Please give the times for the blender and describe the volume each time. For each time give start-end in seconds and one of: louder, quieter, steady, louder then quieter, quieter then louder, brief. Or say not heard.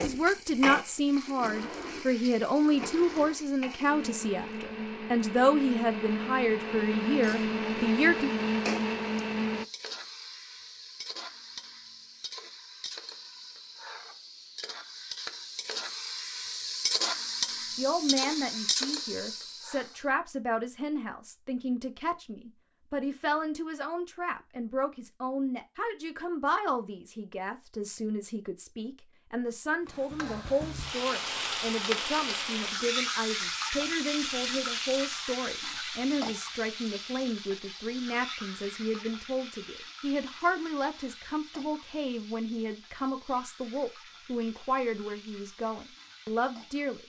0.0-9.7 louder.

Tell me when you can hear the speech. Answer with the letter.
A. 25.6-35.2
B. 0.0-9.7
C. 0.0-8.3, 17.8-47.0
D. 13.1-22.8
C.